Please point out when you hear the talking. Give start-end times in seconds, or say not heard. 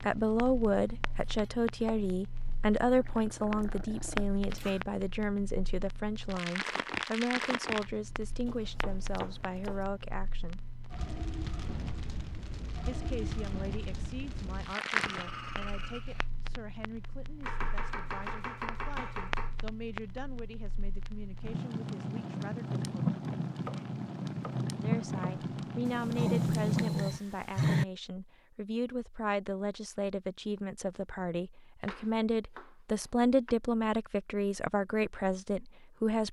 0.0-10.7, 12.8-23.1, 24.8-36.2.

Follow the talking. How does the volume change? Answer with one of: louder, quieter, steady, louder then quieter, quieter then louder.
quieter then louder.